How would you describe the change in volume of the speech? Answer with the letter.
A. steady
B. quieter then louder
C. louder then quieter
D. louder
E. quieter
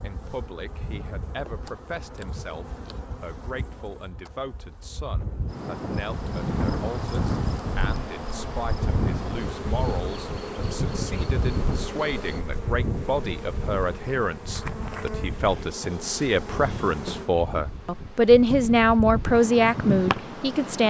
D.